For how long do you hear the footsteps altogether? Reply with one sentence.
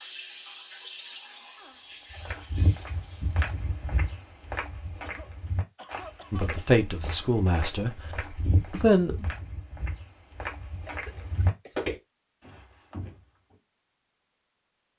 You can hear the footsteps for 11 seconds altogether.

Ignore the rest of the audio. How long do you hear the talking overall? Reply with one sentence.
The talking can be heard for 2 seconds in total.